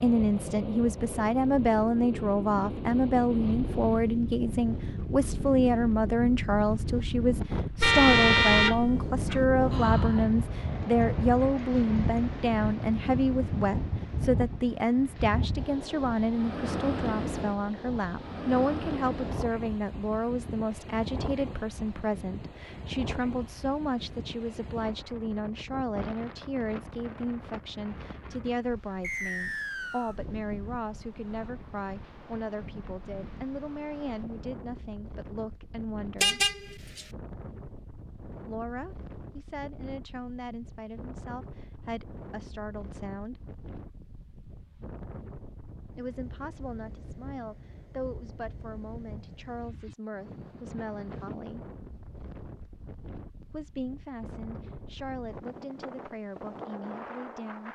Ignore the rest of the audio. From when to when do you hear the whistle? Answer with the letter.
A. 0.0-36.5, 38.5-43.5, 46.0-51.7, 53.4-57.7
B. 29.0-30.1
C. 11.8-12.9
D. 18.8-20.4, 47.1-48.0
B.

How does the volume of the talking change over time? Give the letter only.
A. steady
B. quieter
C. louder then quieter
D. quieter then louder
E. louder
B.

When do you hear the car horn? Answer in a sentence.
The car horn can be heard from 7.8 to 9.4 s and from 36.2 to 37.0 s.